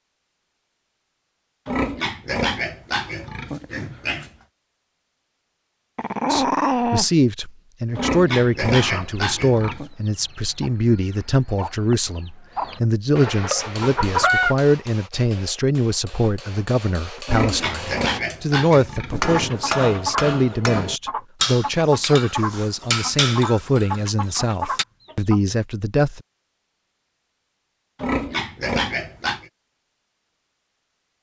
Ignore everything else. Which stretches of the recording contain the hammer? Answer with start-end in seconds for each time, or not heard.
13.6-24.9.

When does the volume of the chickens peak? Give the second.
14 s.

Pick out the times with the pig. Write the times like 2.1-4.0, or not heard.
1.6-4.3, 8.0-9.9, 17.2-19.7, 27.9-29.5.